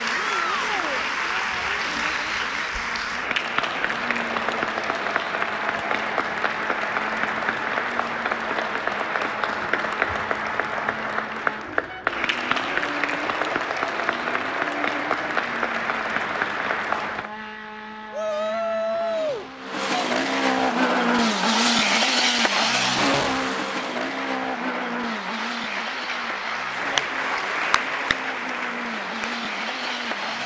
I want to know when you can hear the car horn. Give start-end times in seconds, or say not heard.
not heard.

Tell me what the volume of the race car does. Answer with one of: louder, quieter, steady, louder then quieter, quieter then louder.
louder then quieter.